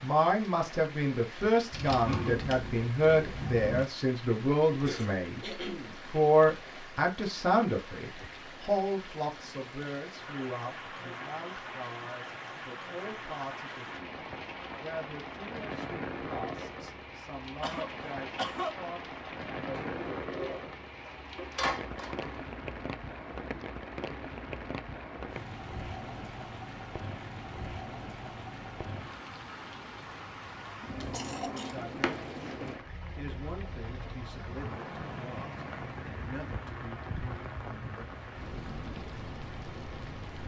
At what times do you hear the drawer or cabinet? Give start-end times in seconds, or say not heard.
1.7-3.9, 19.7-22.3, 31.1-32.2.